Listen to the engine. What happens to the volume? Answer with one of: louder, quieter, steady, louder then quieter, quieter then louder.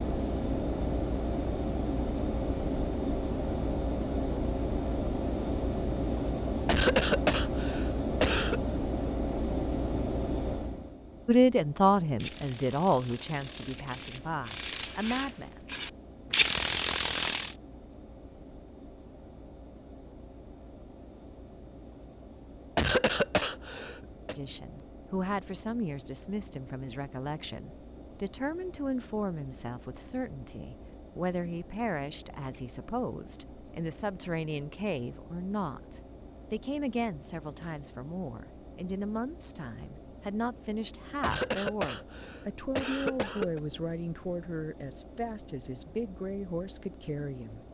quieter.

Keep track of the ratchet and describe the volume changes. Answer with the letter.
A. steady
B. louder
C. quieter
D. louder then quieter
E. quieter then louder
B.